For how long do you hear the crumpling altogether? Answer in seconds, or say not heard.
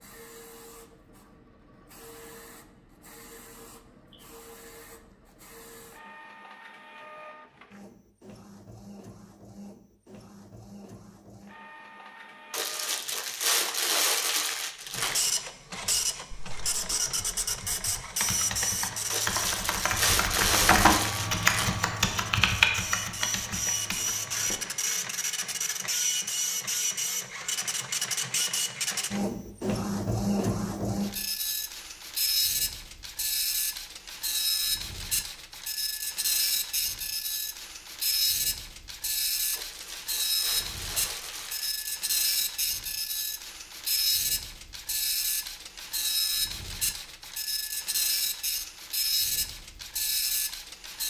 8 s.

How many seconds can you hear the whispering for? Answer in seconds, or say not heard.
not heard.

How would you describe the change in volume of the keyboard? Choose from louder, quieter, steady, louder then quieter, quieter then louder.
louder then quieter.